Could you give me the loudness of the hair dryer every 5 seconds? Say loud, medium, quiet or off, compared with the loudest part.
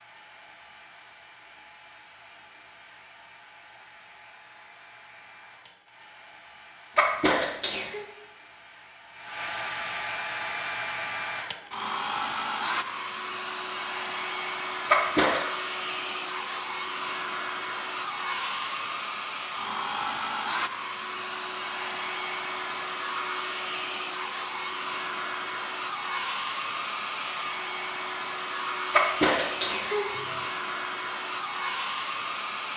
quiet, medium, loud, loud, loud, loud, loud.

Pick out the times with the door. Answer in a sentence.
The door can't be heard in this clip.